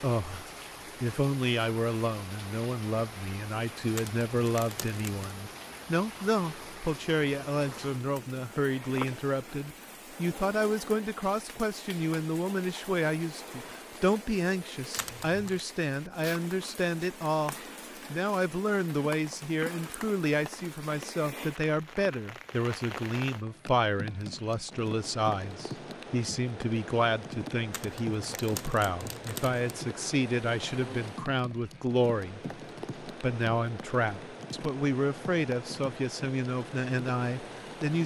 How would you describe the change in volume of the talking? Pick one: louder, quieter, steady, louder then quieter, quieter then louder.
steady.